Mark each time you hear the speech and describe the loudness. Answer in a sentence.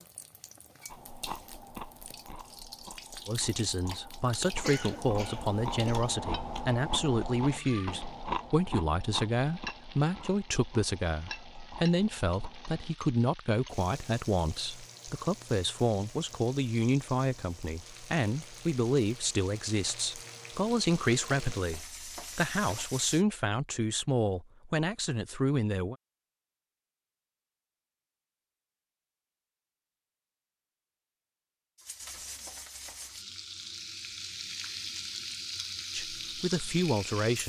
You can hear the speech from 3.2 to 25.9 s, at a steady volume; and briefly from 35.9 to 37.4 s.